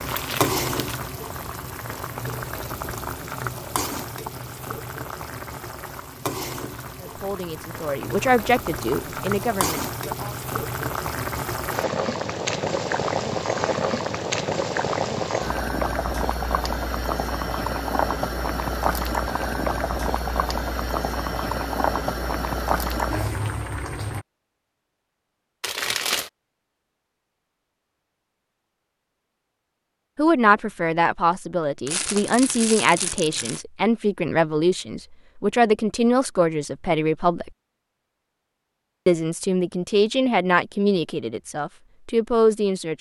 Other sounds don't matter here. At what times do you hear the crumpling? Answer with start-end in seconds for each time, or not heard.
0.1-0.9, 25.6-26.3, 31.9-33.6.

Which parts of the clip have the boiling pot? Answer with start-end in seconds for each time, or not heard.
0.0-24.2.